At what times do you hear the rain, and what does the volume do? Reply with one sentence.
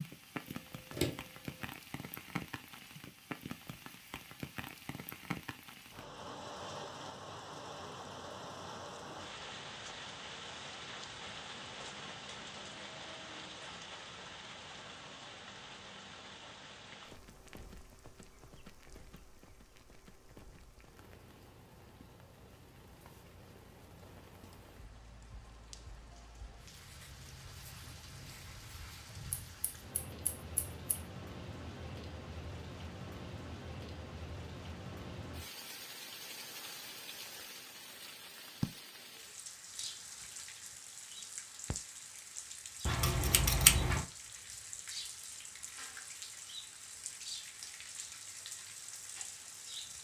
The rain can be heard from 0.0 to 49.9 s, getting quieter then louder.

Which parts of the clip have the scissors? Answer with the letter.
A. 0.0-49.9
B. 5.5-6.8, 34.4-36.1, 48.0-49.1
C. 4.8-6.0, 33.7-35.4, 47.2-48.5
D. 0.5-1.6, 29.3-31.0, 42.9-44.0
D.